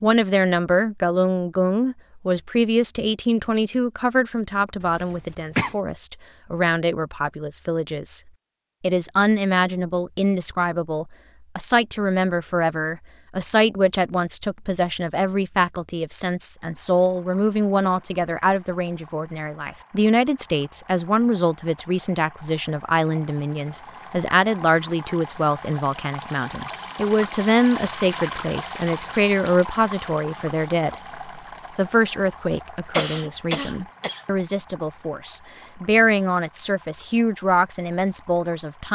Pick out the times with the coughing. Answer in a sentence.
You can hear the coughing from 4.8 to 5.8 s and from 32.5 to 34.2 s.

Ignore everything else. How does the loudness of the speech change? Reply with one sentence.
The volume of the speech stays about the same.